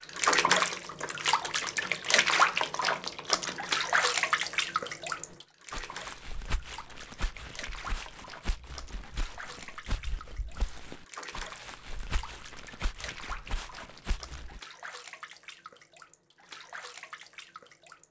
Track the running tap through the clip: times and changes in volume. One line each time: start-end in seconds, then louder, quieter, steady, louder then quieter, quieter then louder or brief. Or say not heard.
0.0-18.0 quieter.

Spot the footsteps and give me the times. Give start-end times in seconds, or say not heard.
5.3-14.6.